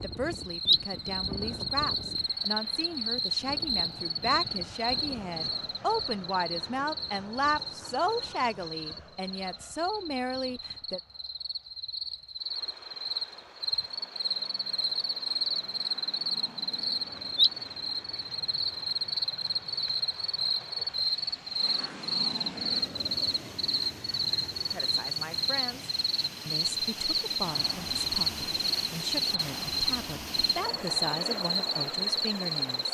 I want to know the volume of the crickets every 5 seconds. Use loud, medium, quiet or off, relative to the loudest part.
loud, medium, medium, loud, loud, loud, loud.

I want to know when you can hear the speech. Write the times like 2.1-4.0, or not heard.
0.0-11.0, 24.7-32.8.